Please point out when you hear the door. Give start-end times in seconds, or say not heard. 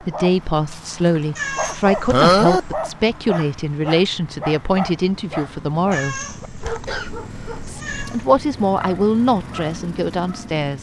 not heard.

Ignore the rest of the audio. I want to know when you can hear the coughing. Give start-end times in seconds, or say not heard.
2.1-2.6, 6.7-7.7.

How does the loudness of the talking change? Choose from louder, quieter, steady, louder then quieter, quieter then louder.
steady.